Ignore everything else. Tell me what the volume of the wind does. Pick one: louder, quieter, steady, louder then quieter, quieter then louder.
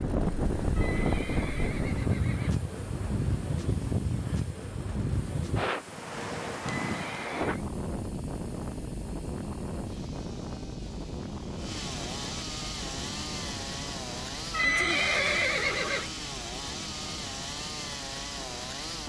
quieter.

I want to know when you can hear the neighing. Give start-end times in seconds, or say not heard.
0.8-2.6, 6.8-7.7, 14.5-16.1.